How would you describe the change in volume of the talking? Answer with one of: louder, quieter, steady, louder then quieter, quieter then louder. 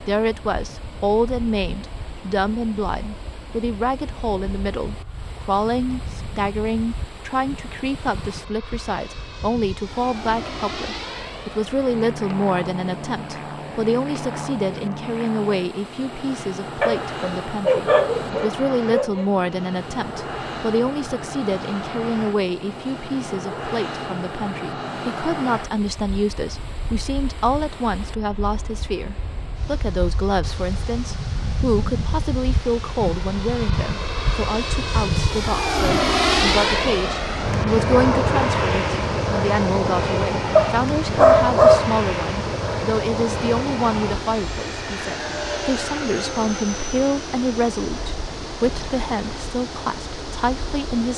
steady.